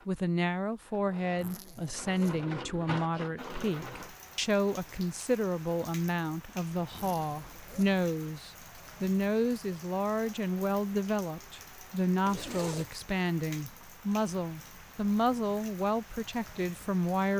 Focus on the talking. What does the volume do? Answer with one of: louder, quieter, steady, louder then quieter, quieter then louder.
steady.